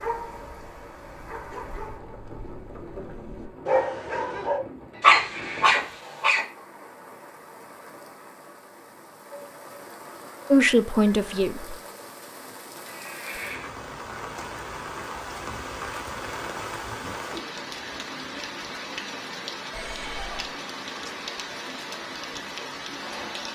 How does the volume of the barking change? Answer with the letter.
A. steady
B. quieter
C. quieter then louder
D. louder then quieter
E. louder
E.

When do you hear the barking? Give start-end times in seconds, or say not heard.
0.0-6.5.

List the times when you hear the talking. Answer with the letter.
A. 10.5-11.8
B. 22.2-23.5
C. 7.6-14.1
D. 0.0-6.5
A.